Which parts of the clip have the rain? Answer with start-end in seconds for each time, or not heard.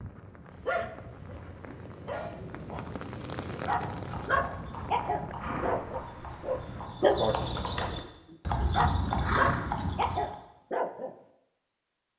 0.0-6.9.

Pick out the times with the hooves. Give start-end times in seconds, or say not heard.
3.6-10.3.